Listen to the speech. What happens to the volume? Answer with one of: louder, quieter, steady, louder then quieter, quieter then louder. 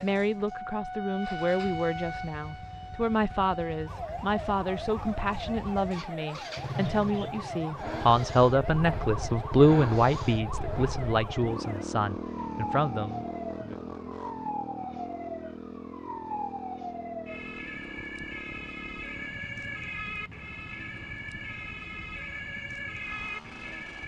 louder then quieter.